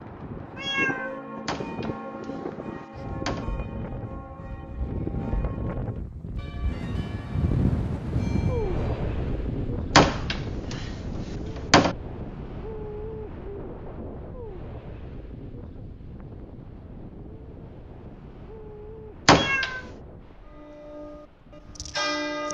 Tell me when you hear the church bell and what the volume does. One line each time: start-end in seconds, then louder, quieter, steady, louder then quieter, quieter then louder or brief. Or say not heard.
0.4-9.1 quieter
20.4-22.5 brief.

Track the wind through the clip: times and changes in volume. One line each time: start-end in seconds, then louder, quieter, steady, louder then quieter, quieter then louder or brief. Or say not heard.
0.0-22.5 louder then quieter.